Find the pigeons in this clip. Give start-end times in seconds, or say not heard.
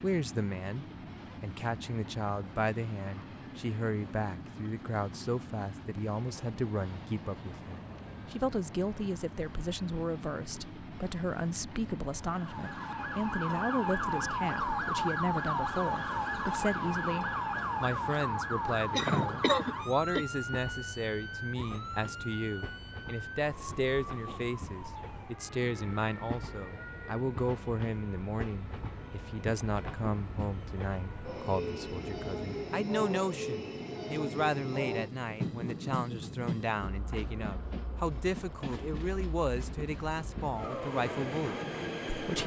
not heard.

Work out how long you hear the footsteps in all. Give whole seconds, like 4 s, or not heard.
not heard.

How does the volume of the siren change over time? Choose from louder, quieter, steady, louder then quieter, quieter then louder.
quieter.